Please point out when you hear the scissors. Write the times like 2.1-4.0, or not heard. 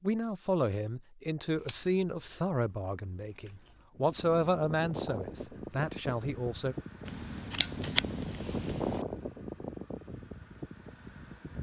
1.6-3.8, 7.0-9.1.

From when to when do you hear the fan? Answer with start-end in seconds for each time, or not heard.
4.0-11.5.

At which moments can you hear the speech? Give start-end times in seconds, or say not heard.
0.0-6.8.